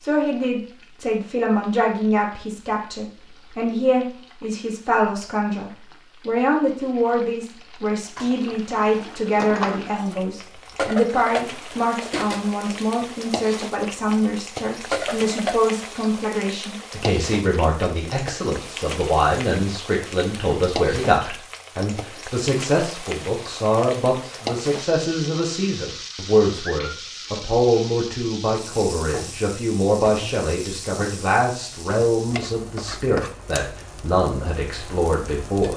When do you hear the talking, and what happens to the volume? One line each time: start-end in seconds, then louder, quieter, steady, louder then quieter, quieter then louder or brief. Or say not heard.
0.0-35.7 steady.